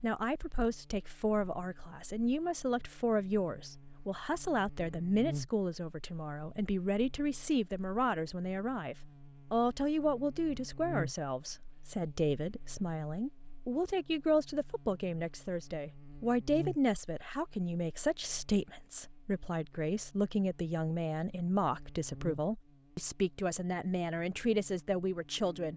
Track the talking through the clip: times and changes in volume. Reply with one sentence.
The talking can be heard from 0.0 to 25.7 s, at a steady volume.